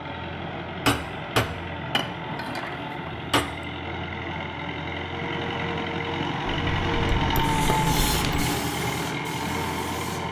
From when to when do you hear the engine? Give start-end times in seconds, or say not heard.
0.0-10.2.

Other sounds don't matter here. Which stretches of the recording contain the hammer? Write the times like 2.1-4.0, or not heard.
0.8-3.5, 6.5-8.4.